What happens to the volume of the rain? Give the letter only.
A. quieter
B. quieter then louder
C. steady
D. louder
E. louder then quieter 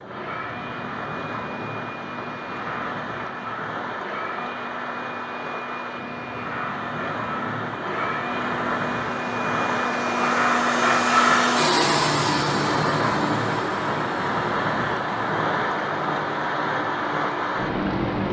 D.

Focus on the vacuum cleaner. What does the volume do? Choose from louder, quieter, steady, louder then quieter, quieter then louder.
louder then quieter.